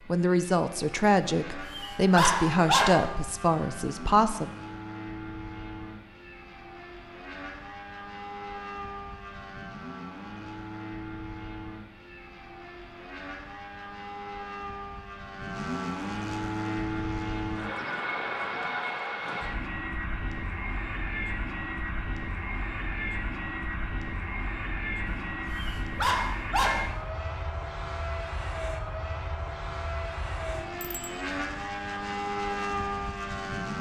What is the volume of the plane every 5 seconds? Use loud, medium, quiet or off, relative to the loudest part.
medium, medium, medium, loud, loud, loud, loud.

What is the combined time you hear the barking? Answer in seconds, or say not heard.
4 s.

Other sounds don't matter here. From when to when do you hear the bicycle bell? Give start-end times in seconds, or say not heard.
30.8-31.2.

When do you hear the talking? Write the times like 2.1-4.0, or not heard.
0.1-4.5.